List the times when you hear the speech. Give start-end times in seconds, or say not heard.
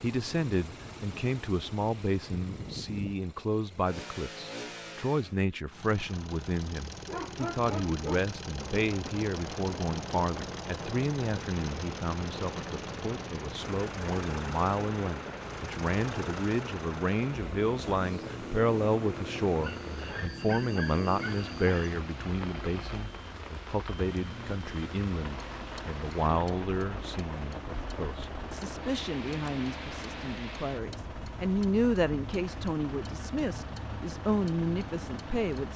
0.0-35.7.